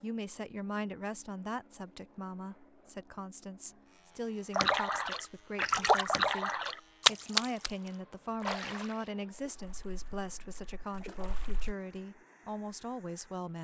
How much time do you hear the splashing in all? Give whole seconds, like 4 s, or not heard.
7 s.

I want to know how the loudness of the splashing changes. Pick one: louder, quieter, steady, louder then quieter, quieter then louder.
quieter.